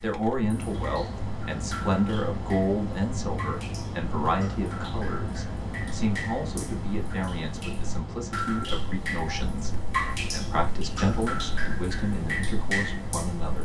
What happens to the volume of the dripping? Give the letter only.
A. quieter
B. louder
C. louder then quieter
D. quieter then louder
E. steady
B.